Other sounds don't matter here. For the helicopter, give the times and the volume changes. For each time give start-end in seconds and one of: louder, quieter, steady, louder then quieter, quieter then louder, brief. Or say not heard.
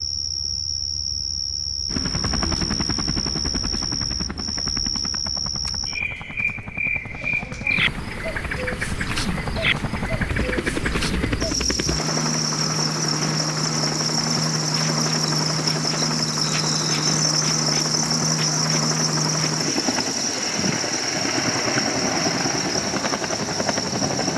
1.9-24.3 louder.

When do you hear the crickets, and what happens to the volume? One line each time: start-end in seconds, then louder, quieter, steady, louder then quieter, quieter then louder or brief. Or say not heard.
0.0-24.3 steady.